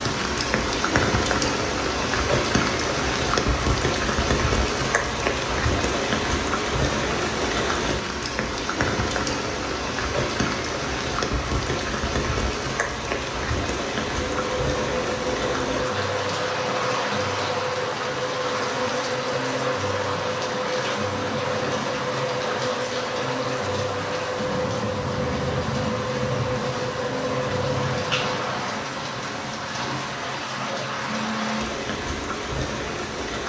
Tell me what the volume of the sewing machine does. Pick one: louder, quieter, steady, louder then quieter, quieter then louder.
steady.